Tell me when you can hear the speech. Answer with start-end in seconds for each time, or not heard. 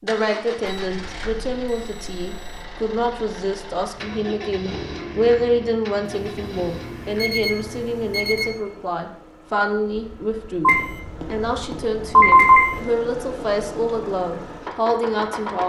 0.0-15.6.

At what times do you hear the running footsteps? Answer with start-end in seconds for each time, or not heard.
not heard.